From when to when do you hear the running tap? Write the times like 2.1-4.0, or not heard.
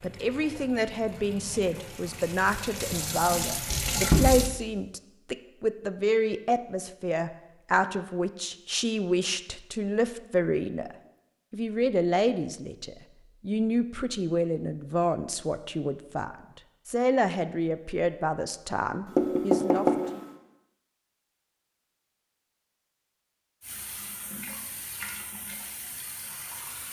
0.0-4.5, 23.6-26.8.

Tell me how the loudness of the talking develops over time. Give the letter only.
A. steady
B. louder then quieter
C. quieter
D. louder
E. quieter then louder
A.